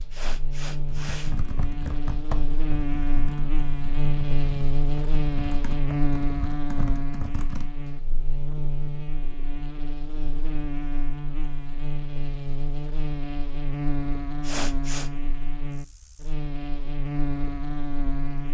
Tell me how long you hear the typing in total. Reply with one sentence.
You can hear the typing for 7 seconds altogether.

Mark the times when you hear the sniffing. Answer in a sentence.
You can hear the sniffing from 0.1 to 1.4 s and from 14.4 to 15.1 s.